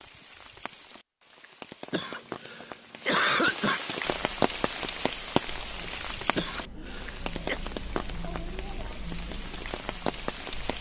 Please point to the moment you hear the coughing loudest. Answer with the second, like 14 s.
3 s.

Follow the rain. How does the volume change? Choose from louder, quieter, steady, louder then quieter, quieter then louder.
louder then quieter.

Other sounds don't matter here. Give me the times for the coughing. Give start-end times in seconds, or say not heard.
1.9-3.8, 6.3-7.6.